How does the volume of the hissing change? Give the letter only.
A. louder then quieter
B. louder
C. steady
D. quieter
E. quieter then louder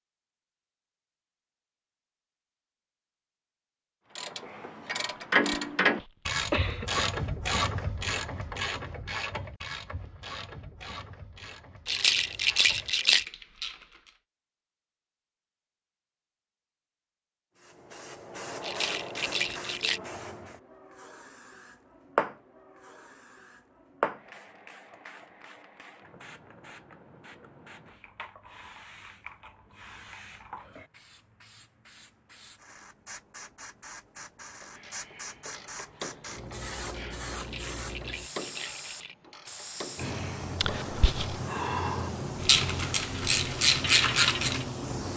E.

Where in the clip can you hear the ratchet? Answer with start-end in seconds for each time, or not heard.
4.2-14.2, 34.6-44.6.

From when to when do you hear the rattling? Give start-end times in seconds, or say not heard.
11.8-13.2, 18.6-20.0, 37.4-39.1.